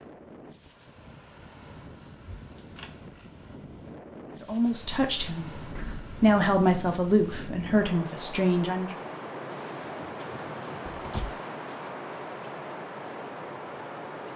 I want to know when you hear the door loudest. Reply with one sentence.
The volume of the door peaks at 11 seconds.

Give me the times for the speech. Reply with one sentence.
You can hear the speech from 4.4 to 5.6 s and from 6.2 to 8.9 s.